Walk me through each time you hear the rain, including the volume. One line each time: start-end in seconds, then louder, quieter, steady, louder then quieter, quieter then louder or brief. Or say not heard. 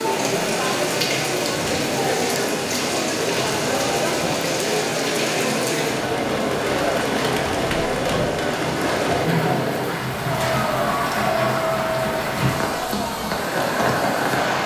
0.0-14.6 steady.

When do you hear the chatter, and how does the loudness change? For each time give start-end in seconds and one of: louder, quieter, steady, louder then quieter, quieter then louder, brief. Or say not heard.
0.0-14.6 steady.